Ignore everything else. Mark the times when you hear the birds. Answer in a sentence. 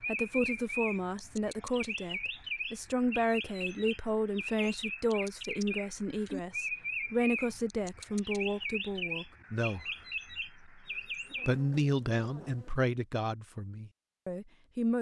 You can hear the birds from 0.0 to 11.6 s.